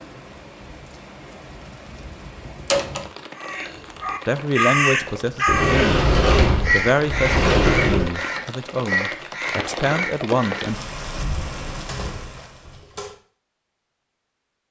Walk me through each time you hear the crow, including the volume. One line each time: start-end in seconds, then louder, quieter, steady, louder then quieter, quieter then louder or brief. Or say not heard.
3.4-11.8 quieter.